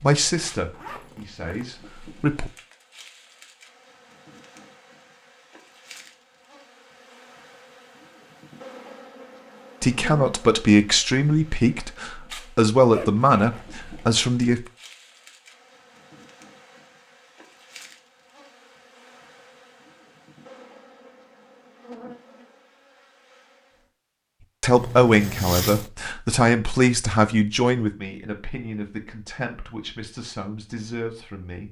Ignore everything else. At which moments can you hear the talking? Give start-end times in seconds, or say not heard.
0.0-2.5, 9.8-14.7, 24.6-31.6.